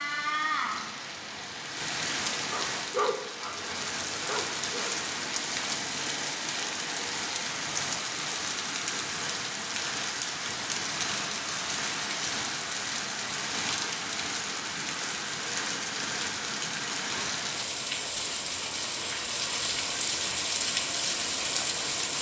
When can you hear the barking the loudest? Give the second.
3 s.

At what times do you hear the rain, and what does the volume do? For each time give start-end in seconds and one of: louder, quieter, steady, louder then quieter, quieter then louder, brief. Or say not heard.
0.0-22.1 steady.